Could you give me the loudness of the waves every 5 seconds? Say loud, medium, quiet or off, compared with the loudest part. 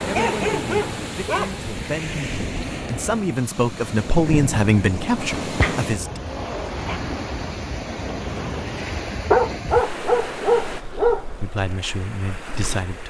loud, loud, medium.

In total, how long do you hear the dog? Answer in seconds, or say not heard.
5 s.